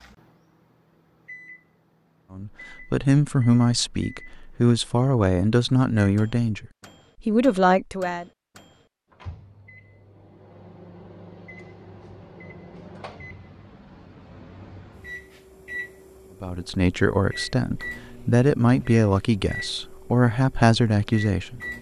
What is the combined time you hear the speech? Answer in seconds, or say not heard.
11 s.